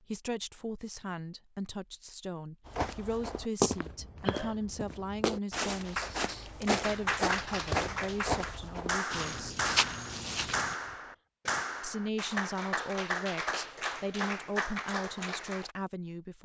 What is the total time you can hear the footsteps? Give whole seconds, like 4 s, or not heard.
8 s.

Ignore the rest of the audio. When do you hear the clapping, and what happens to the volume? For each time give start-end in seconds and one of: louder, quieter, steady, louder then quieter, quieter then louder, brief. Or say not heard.
5.8-15.8 steady.